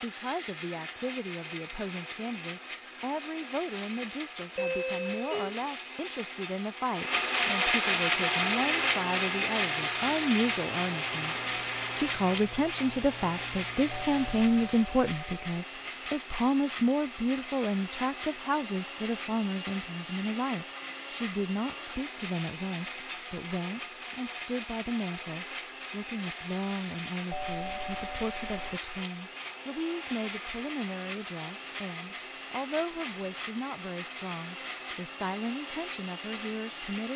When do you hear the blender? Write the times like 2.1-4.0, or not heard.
0.0-37.1.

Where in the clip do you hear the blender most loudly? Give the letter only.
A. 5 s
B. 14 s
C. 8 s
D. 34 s
C.